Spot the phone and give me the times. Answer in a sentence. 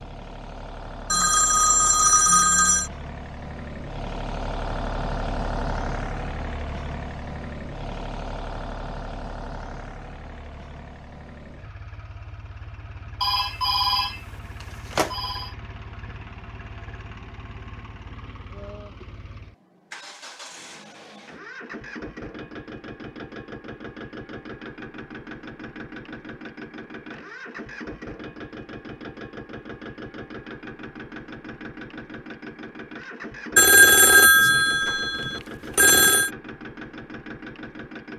The phone can be heard from 1.1 to 2.9 s, from 13.2 to 15.5 s and from 33.5 to 36.3 s.